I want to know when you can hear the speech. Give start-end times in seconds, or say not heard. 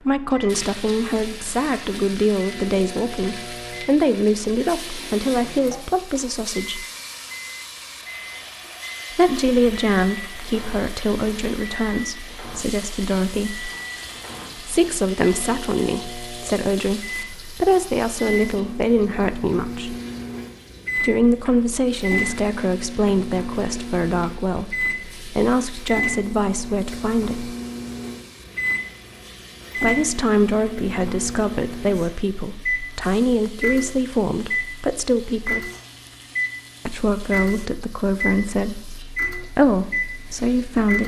0.1-6.8, 9.1-13.7, 14.6-19.9, 20.9-27.6, 29.8-35.7, 36.9-41.0.